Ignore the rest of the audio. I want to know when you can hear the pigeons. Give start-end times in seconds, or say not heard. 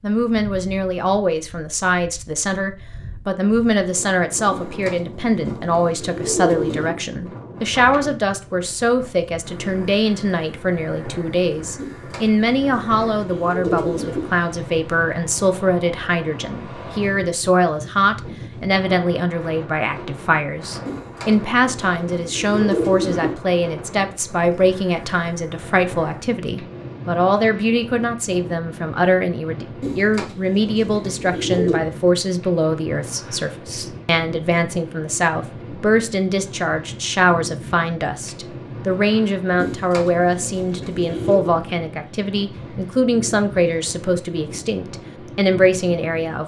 4.5-7.0, 11.8-14.2, 20.9-23.4, 29.8-31.8, 39.5-41.5.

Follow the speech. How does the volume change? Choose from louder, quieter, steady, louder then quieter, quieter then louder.
steady.